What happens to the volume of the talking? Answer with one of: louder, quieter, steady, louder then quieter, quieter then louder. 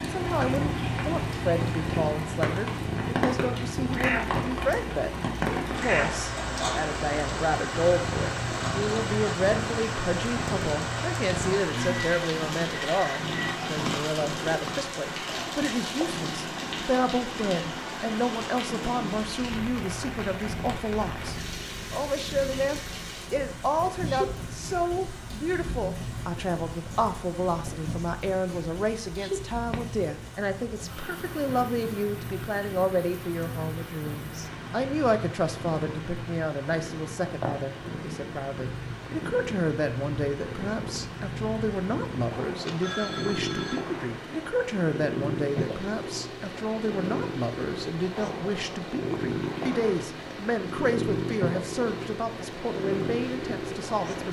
steady.